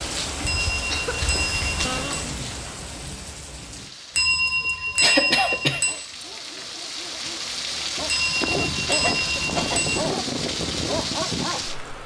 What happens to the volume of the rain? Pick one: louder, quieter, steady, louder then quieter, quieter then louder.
quieter then louder.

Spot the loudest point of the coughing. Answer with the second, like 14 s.
5 s.